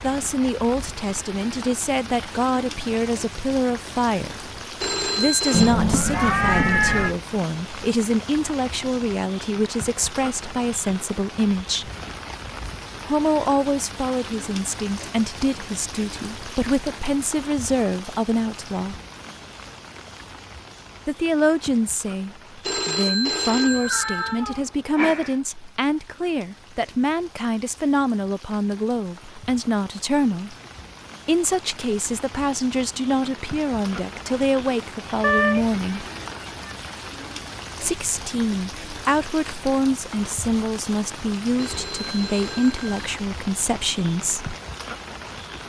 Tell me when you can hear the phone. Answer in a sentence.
You can hear the phone from 4.8 to 5.8 s, from 22.6 to 24.4 s and from 41.5 to 43.0 s.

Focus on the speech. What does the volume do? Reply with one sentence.
The volume of the speech stays about the same.